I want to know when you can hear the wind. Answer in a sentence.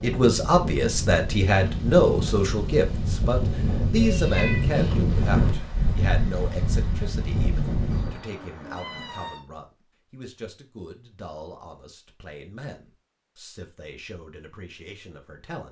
You can hear the wind from 0.0 to 8.2 s.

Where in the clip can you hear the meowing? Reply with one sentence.
The meowing can be heard from 4.0 to 4.7 s and from 7.9 to 9.4 s.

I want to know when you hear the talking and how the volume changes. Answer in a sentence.
The talking can be heard from 0.0 to 15.6 s, getting quieter.